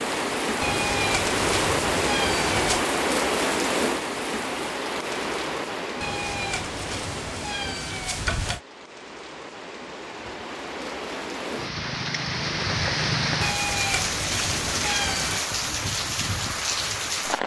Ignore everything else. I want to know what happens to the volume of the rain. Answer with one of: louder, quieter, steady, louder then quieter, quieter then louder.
quieter then louder.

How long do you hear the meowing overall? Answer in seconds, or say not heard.
7 s.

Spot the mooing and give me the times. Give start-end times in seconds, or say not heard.
not heard.